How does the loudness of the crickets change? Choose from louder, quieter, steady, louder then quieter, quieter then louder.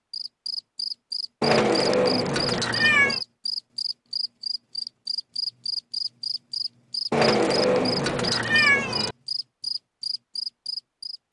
steady.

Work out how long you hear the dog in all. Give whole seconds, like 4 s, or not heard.
not heard.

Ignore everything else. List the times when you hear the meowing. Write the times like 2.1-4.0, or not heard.
1.4-3.2, 7.1-9.2.